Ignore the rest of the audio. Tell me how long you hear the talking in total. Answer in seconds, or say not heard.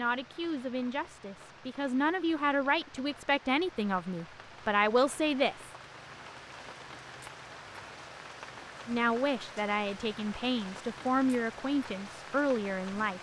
10 s.